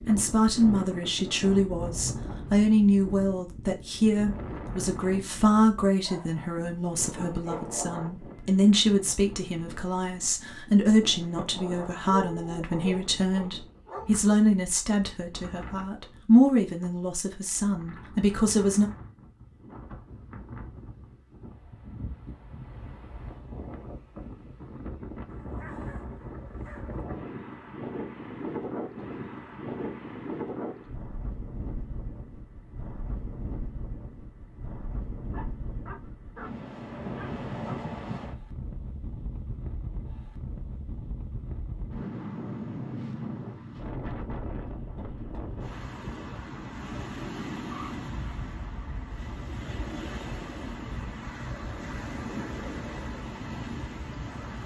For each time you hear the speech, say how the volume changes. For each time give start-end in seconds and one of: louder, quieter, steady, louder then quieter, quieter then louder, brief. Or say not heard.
0.1-18.9 steady.